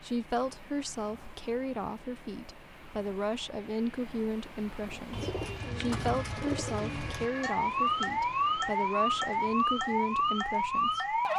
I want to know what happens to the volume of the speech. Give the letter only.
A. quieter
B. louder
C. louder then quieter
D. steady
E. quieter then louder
D.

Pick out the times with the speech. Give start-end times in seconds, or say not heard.
0.0-11.2.